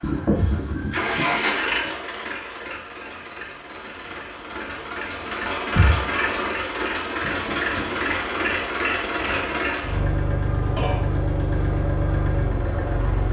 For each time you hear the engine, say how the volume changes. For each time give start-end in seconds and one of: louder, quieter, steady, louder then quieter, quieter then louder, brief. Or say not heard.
0.0-13.2 quieter then louder.